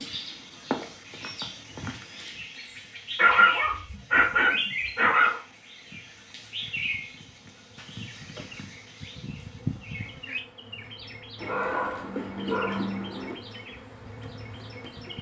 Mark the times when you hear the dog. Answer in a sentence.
The dog can be heard from 3.1 to 5.4 s and from 11.3 to 13.3 s.